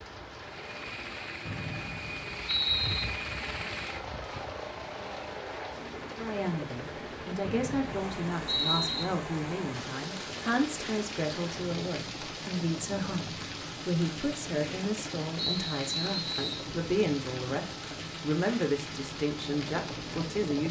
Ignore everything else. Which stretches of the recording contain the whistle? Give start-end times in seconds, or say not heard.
1.4-3.0, 7.4-9.1, 15.3-16.6.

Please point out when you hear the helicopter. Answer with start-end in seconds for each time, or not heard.
0.0-20.6.